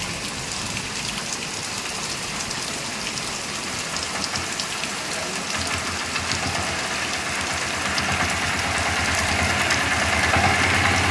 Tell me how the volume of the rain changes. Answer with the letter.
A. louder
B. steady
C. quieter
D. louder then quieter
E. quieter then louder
B.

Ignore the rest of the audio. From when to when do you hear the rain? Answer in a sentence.
The rain can be heard from 0.0 to 11.0 s.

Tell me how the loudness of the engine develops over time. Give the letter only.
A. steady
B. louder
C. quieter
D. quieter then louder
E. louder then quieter
B.